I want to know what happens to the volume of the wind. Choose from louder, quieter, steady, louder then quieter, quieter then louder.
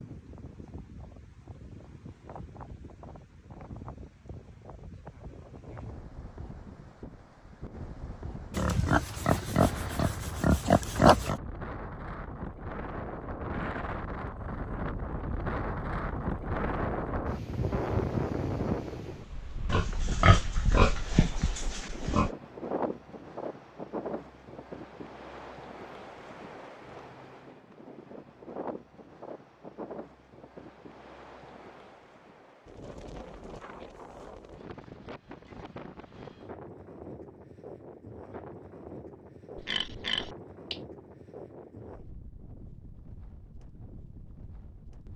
louder then quieter.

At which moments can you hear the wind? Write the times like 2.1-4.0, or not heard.
0.0-45.1.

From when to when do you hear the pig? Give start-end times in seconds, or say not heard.
8.6-11.4, 19.6-22.3, 39.5-40.8.